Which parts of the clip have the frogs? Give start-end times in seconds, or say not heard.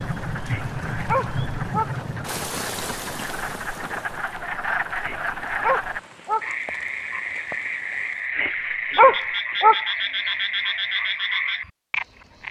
0.0-12.4.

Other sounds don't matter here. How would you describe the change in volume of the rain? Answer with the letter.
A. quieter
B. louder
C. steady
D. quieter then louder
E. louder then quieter
A.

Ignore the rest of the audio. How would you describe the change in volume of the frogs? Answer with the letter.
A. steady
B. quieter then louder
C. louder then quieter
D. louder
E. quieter
D.